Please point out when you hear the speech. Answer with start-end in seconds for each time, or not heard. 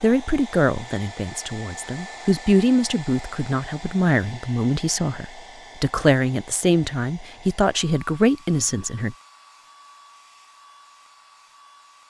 0.0-9.2.